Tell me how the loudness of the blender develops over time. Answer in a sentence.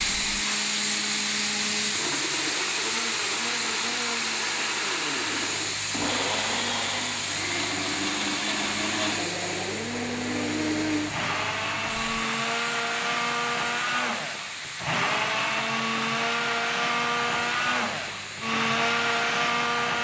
The volume of the blender goes up.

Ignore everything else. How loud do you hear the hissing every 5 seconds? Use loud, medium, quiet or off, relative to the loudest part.
loud, loud, medium, medium.